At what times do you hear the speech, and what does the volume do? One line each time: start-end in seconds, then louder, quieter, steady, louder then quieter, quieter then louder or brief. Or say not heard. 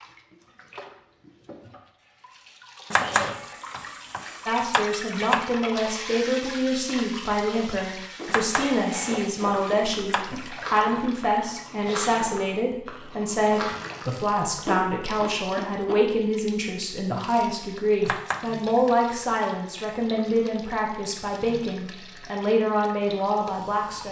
4.5-24.0 steady.